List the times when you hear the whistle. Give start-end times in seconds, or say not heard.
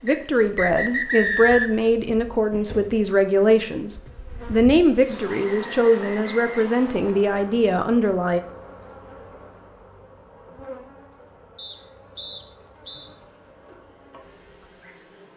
0.1-1.8, 5.2-7.2, 11.6-13.1.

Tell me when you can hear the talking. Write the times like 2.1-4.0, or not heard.
0.0-8.4.